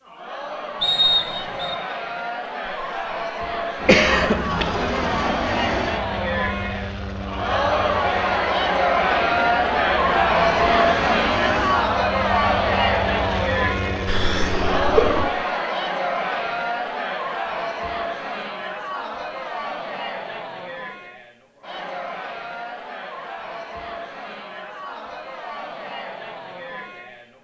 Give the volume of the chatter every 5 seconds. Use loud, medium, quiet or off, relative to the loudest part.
medium, loud, loud, medium, quiet, quiet.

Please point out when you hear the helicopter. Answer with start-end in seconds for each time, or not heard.
3.8-15.3.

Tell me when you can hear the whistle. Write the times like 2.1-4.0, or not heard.
0.8-1.8.